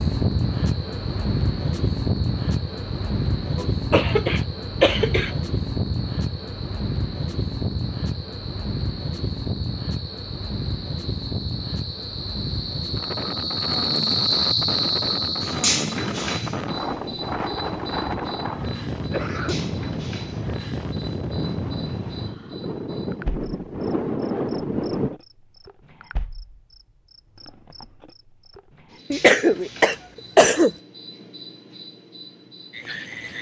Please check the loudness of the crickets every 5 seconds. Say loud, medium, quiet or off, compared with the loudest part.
quiet, quiet, loud, loud, quiet, quiet, quiet.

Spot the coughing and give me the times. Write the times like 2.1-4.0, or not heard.
3.5-5.3, 18.6-19.6, 29.1-30.7.